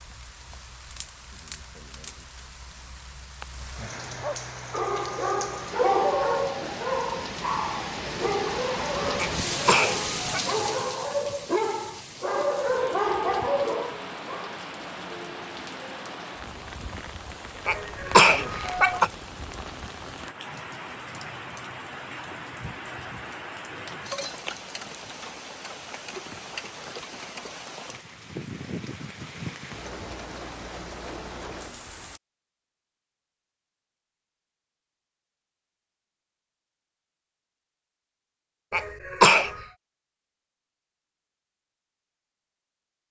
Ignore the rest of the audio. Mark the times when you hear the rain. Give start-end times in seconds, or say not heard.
0.0-32.2.